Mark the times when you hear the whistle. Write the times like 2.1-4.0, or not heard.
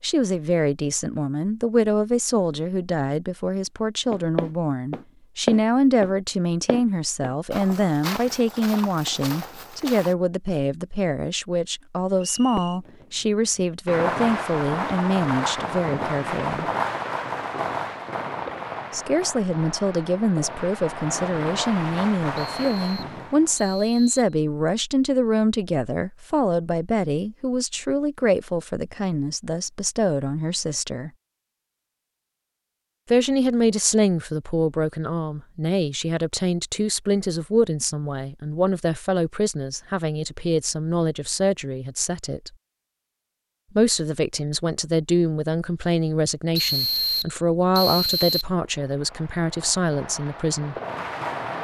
12.2-12.8, 22.4-24.2, 46.5-48.5.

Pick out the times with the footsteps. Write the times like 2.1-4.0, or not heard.
4.1-10.2.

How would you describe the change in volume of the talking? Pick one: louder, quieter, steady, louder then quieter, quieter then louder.
steady.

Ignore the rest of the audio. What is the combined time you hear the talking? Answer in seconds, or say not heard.
45 s.